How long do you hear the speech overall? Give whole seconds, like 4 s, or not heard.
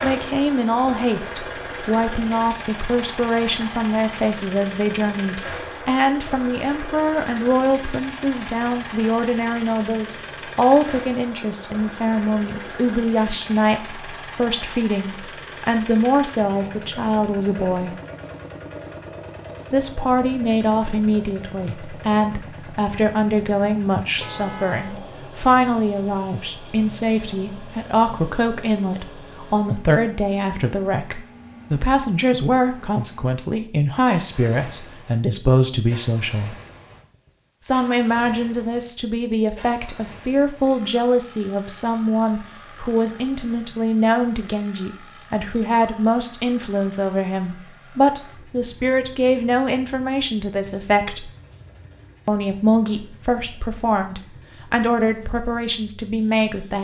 53 s.